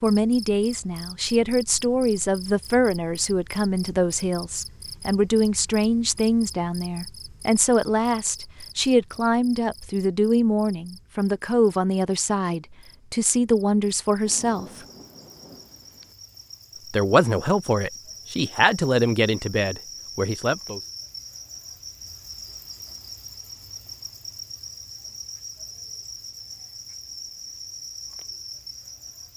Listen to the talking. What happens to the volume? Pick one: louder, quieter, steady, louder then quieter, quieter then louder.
steady.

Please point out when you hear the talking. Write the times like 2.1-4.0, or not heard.
0.0-14.7, 16.9-20.8.